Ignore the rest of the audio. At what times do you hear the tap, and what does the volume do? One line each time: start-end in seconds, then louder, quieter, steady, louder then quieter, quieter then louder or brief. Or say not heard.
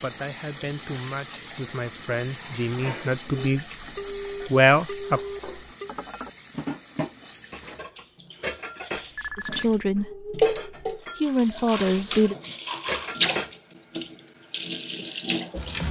0.0-15.8 quieter then louder.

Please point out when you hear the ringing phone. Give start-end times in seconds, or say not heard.
3.3-6.0, 8.9-10.9.